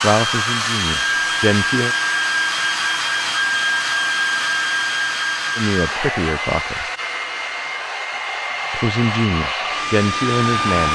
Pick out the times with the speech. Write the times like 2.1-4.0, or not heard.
0.0-1.9, 5.5-6.8, 8.7-10.9.